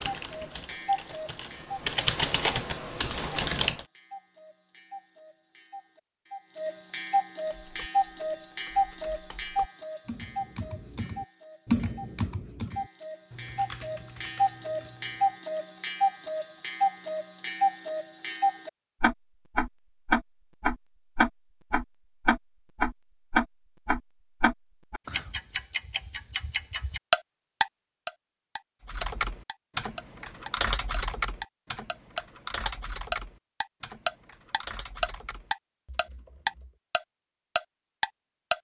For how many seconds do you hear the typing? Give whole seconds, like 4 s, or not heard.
20 s.